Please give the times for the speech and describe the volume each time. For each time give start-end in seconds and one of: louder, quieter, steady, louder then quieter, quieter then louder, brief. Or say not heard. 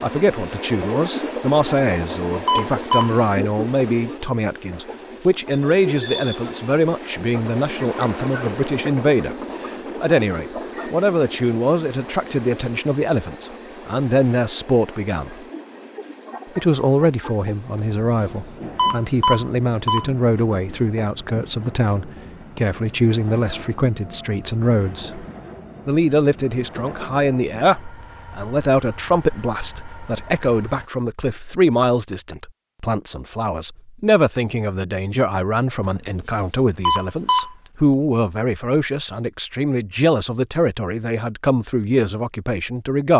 0.0-15.3 steady
16.6-25.2 steady
25.9-43.1 steady.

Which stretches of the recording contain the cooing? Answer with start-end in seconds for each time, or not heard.
not heard.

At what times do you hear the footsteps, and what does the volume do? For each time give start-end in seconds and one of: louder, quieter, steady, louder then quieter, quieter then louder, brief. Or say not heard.
not heard.